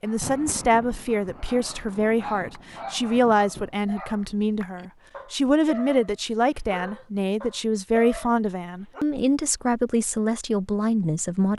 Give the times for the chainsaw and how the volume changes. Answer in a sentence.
The chainsaw can't be heard in this clip.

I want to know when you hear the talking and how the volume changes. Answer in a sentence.
The talking can be heard from 0.0 to 11.5 s, at a steady volume.